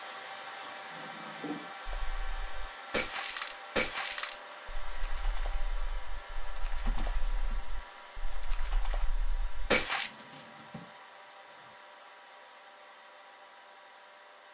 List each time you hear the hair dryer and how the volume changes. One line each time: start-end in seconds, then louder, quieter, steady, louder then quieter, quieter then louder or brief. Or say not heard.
0.0-14.5 quieter.